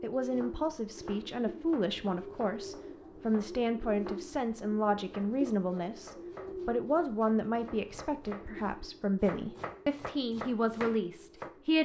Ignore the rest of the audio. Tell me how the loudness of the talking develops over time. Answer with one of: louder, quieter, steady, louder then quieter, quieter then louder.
steady.